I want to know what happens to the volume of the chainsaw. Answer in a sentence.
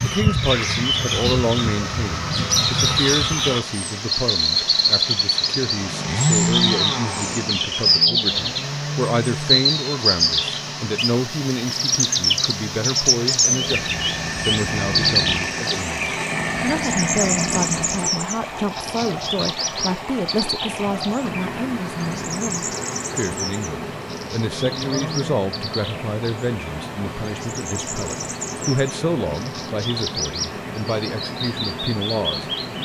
The loudness of the chainsaw goes down, then up.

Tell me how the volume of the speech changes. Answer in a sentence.
The volume of the speech stays about the same.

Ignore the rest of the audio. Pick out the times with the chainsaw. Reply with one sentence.
You can hear the chainsaw from 5.7 to 18.1 s.